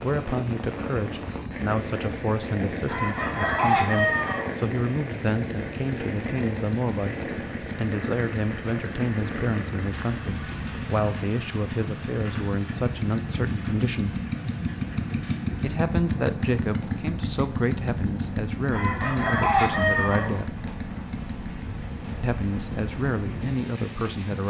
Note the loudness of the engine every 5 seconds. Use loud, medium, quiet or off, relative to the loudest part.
medium, medium, loud, loud, medium.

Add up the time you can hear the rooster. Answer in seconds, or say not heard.
3 s.